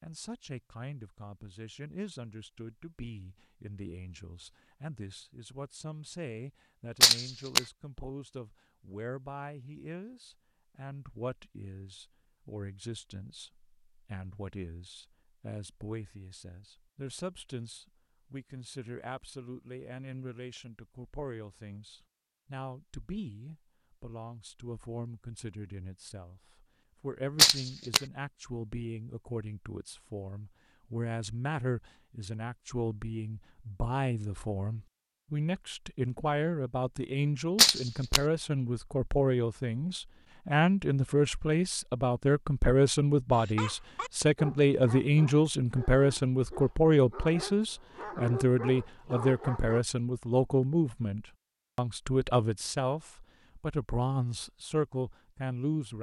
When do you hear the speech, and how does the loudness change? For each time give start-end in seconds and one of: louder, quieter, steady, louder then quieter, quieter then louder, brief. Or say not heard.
0.0-55.9 louder.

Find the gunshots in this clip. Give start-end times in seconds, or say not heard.
7.0-7.6, 27.4-28.0, 37.5-38.2.